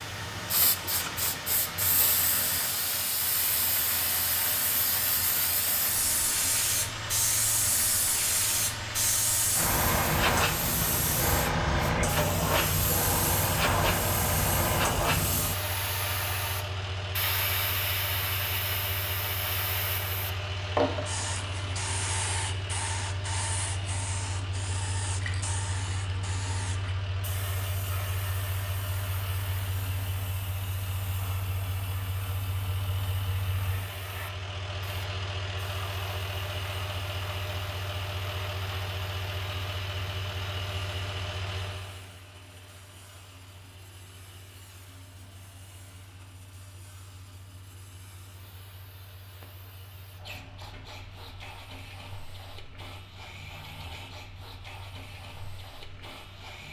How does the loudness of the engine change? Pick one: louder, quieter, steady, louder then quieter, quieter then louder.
quieter.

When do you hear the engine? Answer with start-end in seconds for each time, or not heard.
0.0-56.6.